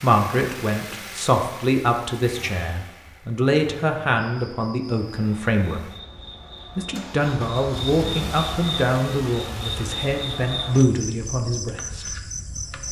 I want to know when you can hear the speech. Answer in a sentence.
You can hear the speech from 0.0 to 5.8 s and from 6.8 to 12.1 s.